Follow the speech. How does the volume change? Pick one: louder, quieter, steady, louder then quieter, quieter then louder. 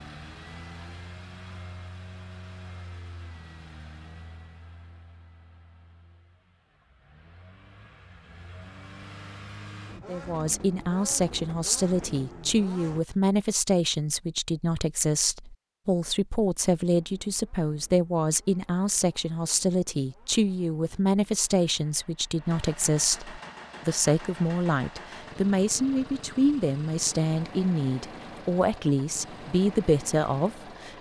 steady.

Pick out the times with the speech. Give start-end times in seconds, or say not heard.
10.1-30.9.